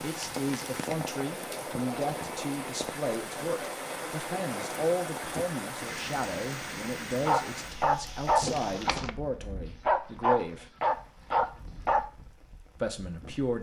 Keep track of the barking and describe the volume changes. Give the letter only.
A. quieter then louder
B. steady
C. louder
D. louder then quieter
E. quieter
A.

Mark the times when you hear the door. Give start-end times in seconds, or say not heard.
8.4-9.1.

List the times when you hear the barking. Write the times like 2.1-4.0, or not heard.
7.2-12.1.